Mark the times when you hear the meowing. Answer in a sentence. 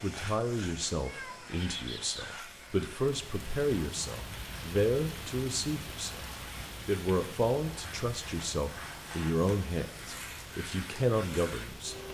You can hear the meowing from 1.0 to 2.4 s.